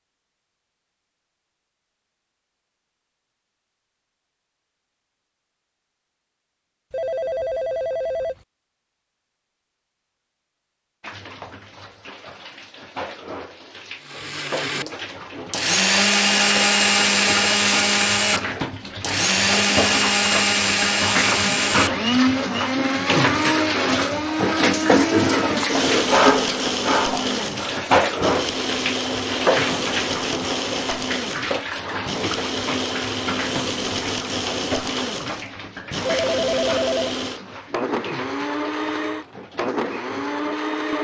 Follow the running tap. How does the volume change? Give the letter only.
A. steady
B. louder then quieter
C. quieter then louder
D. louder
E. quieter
B.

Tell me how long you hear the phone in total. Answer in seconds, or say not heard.
3 s.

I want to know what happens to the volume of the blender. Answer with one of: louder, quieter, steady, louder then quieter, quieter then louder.
quieter.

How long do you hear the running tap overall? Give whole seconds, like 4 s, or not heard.
30 s.